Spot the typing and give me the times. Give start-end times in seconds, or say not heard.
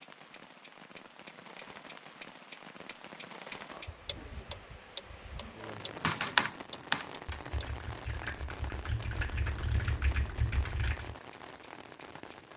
5.8-11.2.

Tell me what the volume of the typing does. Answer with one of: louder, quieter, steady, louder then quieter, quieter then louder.
quieter then louder.